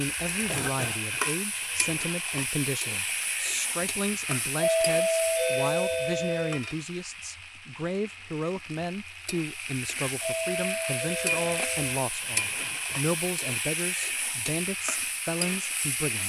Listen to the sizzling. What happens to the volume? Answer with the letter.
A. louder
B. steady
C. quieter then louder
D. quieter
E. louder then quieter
C.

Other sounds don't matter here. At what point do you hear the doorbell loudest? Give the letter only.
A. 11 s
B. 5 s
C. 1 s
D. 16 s
B.